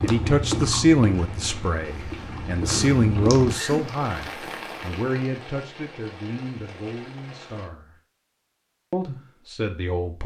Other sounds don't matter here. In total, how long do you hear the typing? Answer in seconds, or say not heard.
not heard.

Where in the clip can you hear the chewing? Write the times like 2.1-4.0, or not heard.
0.0-3.5.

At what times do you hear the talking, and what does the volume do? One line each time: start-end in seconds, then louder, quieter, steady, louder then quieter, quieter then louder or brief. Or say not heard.
0.0-8.0 quieter
8.9-10.2 brief.